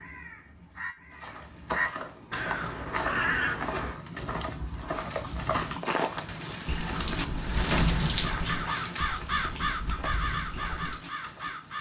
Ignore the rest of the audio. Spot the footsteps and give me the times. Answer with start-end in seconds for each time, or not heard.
1.1-11.4.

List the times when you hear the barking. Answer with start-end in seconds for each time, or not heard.
not heard.